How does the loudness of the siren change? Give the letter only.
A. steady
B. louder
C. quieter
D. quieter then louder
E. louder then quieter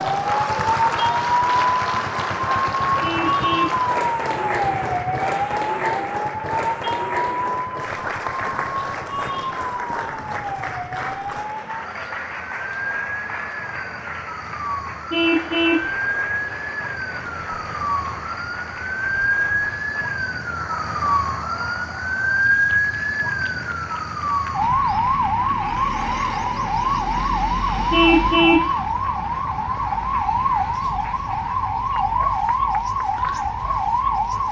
D.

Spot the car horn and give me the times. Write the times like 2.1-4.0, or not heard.
3.0-3.8, 15.1-15.9, 27.9-28.7.